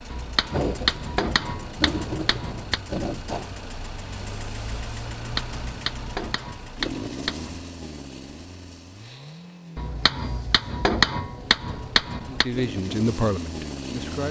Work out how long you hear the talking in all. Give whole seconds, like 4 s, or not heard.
2 s.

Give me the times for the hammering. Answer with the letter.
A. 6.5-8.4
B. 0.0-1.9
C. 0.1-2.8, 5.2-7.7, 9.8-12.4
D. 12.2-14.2
C.